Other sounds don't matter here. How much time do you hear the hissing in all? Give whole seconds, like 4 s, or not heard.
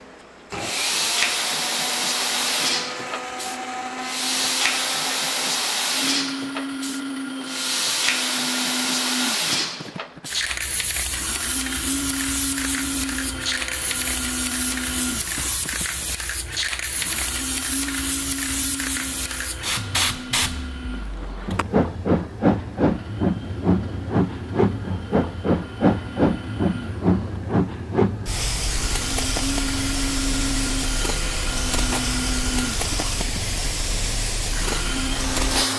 36 s.